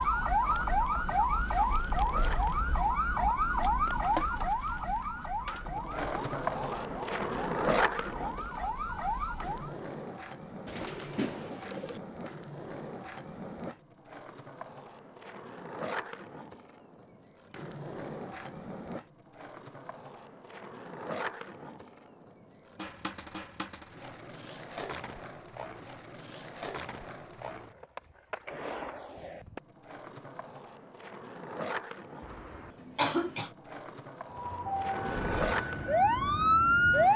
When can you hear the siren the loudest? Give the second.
37 s.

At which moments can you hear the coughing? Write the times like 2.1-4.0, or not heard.
32.2-33.5.